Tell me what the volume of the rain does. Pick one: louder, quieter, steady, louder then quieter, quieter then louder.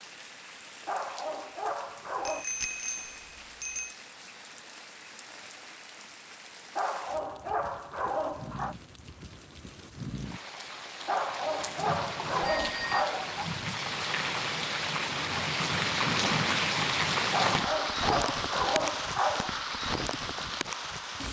louder.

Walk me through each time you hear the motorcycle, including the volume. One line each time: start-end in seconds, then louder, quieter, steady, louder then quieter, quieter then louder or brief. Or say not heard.
not heard.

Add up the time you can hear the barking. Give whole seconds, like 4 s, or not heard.
8 s.